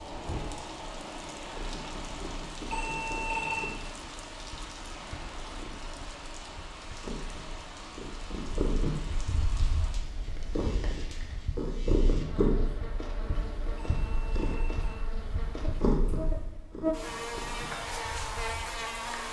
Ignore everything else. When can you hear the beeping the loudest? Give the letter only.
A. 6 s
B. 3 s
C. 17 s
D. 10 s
B.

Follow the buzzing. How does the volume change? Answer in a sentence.
The volume of the buzzing goes up.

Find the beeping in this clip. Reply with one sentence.
The beeping can be heard from 2.6 to 3.7 s and from 13.8 to 14.8 s.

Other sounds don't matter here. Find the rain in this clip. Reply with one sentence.
You can hear the rain from 0.0 to 11.4 s.